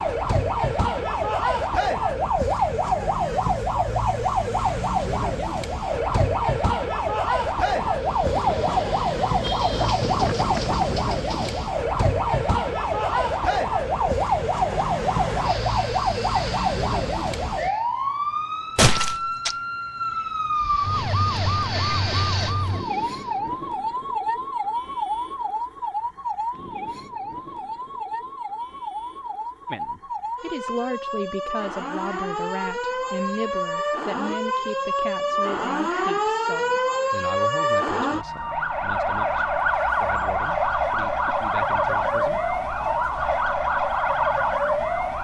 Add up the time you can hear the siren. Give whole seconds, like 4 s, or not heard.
45 s.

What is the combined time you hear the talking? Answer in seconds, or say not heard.
13 s.